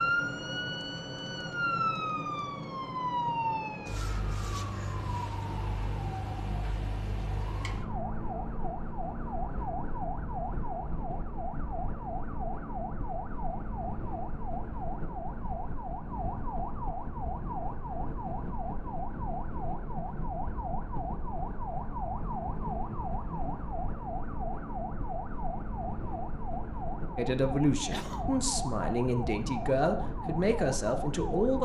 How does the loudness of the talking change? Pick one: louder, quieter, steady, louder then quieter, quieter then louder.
steady.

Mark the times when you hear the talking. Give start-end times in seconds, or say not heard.
27.1-31.6.